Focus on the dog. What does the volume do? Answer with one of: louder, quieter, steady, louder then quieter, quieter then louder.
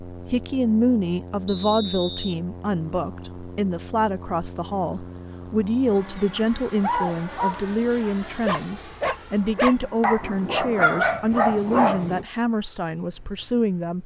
louder.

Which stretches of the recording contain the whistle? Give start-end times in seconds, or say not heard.
1.4-2.4.